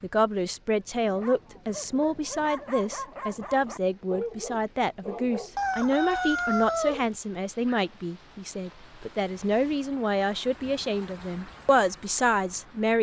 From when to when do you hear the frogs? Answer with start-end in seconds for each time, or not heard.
not heard.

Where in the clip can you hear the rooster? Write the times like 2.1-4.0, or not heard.
5.5-7.0.